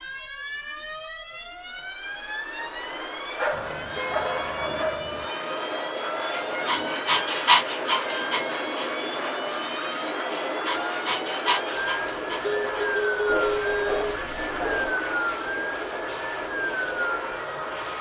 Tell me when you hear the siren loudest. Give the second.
15 s.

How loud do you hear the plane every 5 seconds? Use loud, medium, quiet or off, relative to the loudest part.
medium, loud, loud, loud.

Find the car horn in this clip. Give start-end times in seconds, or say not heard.
3.5-5.3, 12.4-14.2.